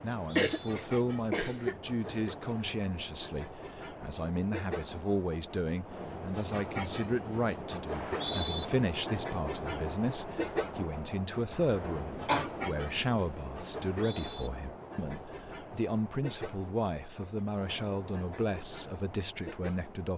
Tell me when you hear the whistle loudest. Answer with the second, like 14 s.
8 s.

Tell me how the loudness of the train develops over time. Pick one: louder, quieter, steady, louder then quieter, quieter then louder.
louder then quieter.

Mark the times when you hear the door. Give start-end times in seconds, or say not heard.
not heard.